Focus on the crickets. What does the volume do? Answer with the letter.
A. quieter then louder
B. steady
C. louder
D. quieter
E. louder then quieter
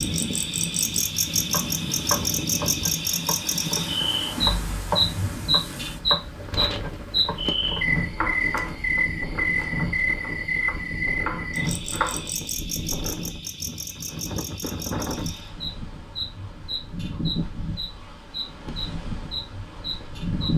D.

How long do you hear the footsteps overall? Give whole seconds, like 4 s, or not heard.
not heard.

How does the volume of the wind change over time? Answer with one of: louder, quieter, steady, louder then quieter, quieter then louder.
steady.